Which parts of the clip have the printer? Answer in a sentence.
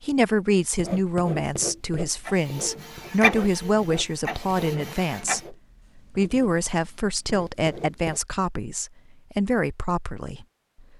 The printer can be heard from 2.2 to 5.4 s.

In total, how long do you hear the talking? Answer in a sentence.
You can hear the talking for 10 seconds altogether.